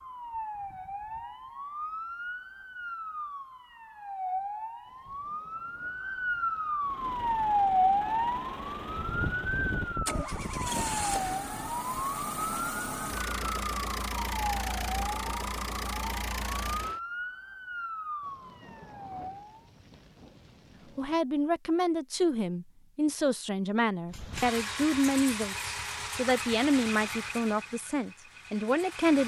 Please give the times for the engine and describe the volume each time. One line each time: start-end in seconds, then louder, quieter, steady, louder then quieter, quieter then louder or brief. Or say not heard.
6.8-17.0 louder
24.1-29.2 quieter.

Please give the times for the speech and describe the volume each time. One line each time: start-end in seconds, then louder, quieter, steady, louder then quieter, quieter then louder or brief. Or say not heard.
20.9-29.2 steady.